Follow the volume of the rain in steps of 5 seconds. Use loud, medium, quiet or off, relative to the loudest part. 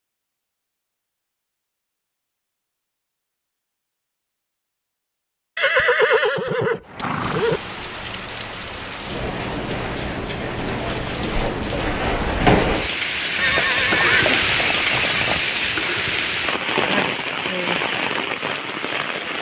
off, medium, loud, loud.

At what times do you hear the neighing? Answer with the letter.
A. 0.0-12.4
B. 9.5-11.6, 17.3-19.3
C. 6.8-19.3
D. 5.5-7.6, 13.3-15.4
D.